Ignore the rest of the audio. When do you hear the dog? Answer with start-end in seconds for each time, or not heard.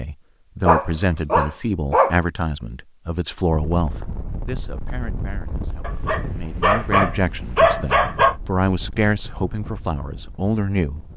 0.7-2.2, 5.8-8.3.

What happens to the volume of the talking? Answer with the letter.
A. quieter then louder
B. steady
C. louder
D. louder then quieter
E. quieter
A.